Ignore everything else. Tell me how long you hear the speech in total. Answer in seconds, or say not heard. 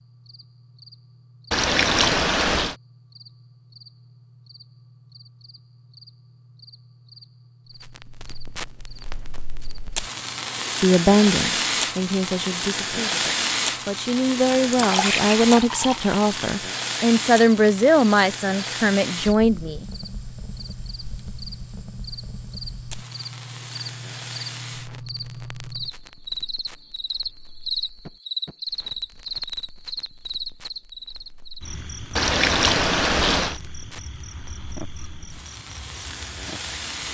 9 s.